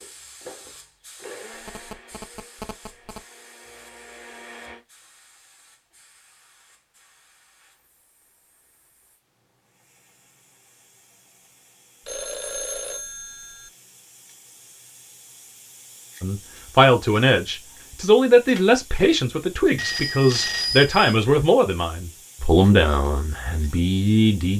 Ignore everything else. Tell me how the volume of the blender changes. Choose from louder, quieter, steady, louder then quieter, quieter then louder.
quieter then louder.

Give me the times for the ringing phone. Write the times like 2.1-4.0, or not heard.
1.6-3.2, 12.1-13.7, 19.8-21.1.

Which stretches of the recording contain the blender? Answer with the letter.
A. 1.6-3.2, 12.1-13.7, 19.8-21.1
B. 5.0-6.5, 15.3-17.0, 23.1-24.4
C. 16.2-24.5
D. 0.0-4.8
D.